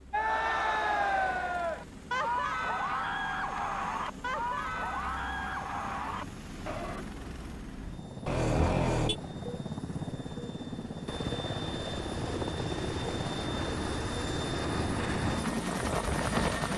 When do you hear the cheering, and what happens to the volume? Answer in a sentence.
The cheering can be heard from 0.1 to 7.0 s, getting quieter.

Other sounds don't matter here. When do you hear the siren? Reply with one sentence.
You can't hear the siren here.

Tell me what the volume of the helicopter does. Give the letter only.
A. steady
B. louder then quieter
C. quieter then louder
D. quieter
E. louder
E.